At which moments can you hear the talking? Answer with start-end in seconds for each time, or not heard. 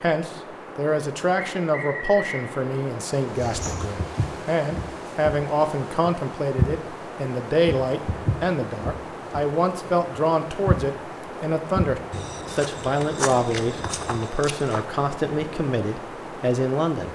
0.0-17.1.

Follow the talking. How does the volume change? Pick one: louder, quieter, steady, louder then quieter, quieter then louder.
steady.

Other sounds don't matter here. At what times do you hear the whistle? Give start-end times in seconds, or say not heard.
1.4-2.5.